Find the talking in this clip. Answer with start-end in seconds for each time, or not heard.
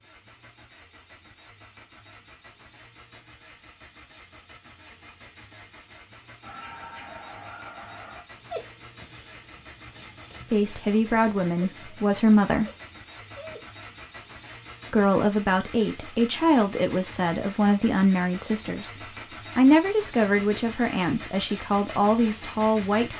10.5-12.7, 14.9-18.9, 19.6-23.1.